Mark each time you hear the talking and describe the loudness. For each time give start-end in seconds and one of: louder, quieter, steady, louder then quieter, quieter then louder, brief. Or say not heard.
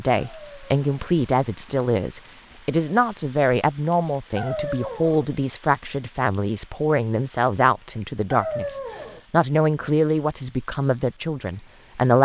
0.0-12.2 steady.